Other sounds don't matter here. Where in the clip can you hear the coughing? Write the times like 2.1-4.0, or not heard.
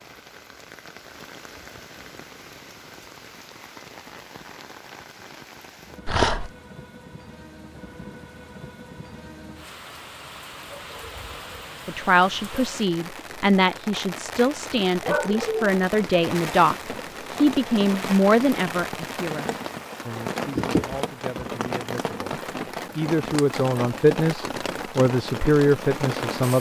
20.6-21.5.